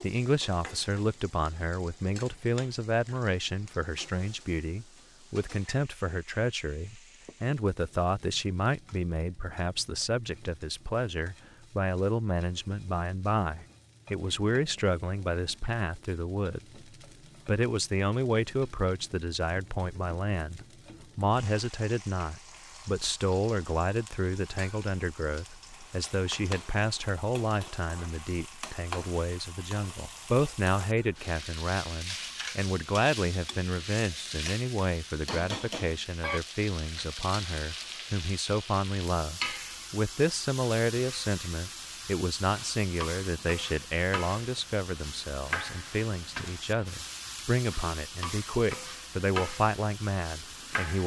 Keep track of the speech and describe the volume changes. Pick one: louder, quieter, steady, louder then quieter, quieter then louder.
steady.